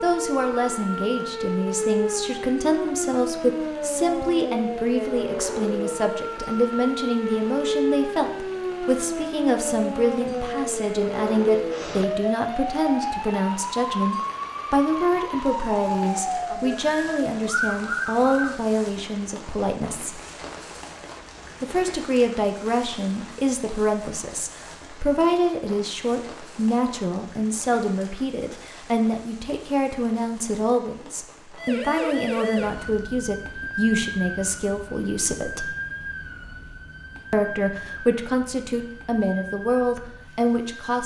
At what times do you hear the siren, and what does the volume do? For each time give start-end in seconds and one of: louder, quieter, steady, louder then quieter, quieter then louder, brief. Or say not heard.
0.0-18.6 steady
31.6-41.0 quieter.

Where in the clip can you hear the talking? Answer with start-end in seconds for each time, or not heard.
0.0-20.2, 21.6-35.8, 37.3-41.0.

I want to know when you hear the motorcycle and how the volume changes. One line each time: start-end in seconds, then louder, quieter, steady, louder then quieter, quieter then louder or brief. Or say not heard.
not heard.